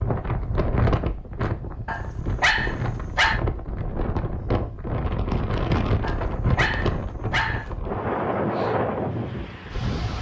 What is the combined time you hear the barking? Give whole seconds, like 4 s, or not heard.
3 s.